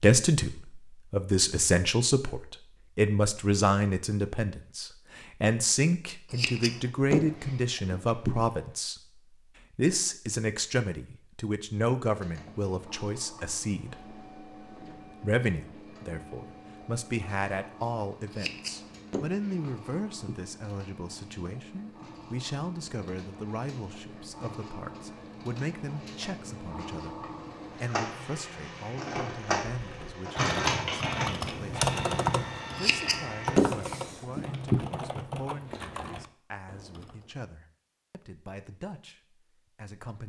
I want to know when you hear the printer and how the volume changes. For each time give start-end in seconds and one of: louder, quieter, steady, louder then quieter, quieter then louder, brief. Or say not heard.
12.1-34.5 louder.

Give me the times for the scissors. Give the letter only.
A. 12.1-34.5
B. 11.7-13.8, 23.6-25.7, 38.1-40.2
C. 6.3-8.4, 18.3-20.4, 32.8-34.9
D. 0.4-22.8
C.